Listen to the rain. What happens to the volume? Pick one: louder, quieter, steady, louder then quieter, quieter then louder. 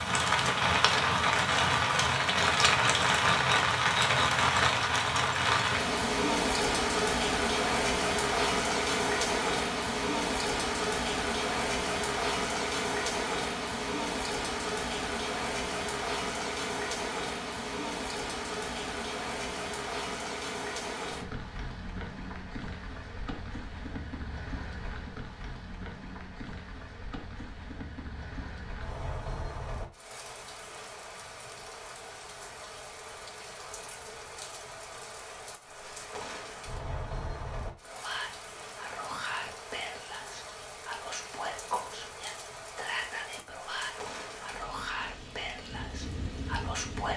quieter.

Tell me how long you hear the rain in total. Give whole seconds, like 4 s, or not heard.
47 s.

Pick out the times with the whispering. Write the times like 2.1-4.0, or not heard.
37.8-47.1.